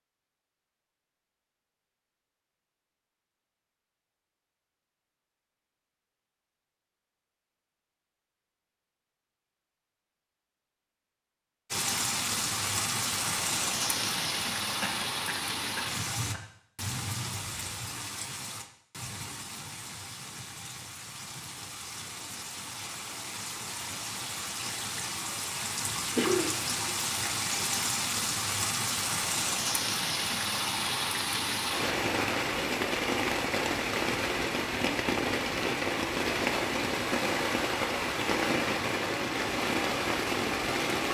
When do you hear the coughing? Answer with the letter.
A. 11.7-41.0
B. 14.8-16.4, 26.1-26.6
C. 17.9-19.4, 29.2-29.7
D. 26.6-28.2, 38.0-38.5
B.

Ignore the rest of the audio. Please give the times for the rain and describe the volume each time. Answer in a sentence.
You can hear the rain from 11.7 to 41.0 s, getting quieter then louder.